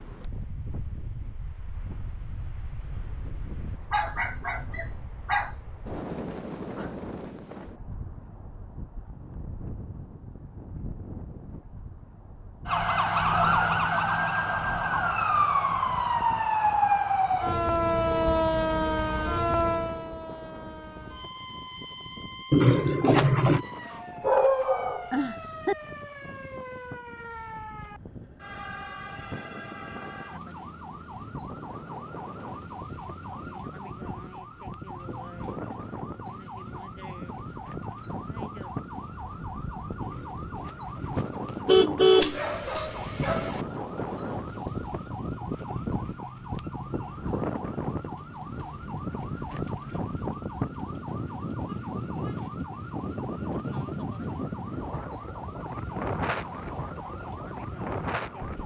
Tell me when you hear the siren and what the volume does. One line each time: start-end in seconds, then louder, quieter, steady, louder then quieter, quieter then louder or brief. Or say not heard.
12.7-58.6 quieter.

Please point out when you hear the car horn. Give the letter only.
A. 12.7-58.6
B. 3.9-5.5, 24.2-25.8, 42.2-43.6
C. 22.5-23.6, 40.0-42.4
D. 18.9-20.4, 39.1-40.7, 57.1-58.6
C.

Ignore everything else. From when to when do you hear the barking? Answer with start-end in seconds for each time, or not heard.
3.9-5.5, 24.2-25.8, 42.2-43.6.